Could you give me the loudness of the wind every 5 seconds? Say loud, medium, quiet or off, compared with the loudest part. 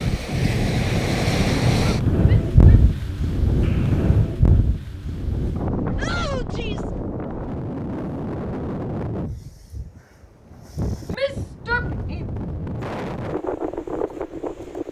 loud, medium, medium.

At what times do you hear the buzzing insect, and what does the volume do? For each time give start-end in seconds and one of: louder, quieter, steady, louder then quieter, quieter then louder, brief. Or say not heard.
not heard.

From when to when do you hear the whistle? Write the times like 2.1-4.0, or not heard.
3.6-4.2.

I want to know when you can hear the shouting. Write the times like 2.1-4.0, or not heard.
2.2-2.8, 6.0-6.9, 11.1-12.2.